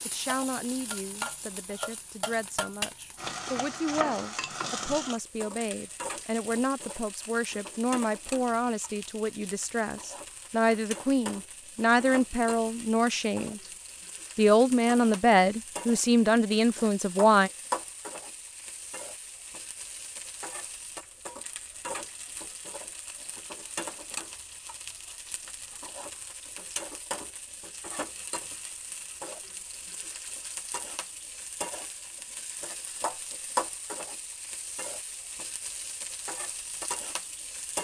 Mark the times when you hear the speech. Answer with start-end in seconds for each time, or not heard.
0.1-13.6, 14.3-17.5.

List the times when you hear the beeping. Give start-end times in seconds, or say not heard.
not heard.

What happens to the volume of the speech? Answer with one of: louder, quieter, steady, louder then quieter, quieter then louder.
louder.